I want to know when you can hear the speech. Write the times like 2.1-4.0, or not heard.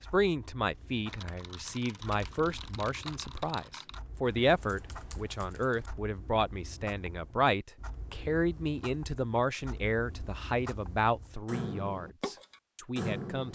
0.1-13.4.